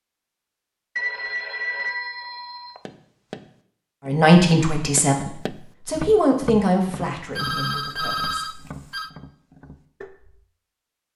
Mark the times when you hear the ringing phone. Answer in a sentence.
The ringing phone can be heard from 0.9 to 2.8 s and from 7.3 to 9.1 s.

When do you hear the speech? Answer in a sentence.
The speech can be heard from 4.0 to 8.6 s.